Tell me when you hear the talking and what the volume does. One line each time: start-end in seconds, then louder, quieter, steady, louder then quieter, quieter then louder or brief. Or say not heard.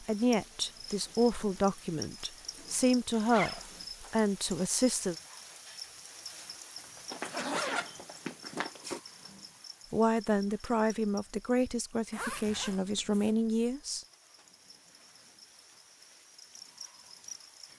0.0-5.2 steady
9.9-14.1 quieter then louder.